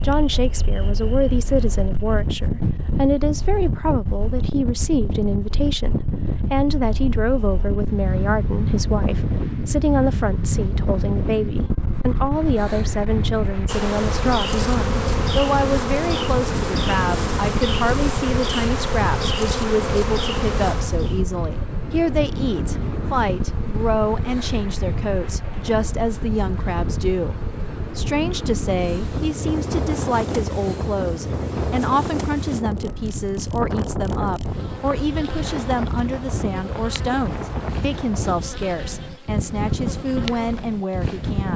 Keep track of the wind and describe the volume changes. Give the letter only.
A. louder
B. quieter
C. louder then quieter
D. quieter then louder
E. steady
E.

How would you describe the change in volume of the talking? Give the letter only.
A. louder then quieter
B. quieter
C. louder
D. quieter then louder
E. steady
E.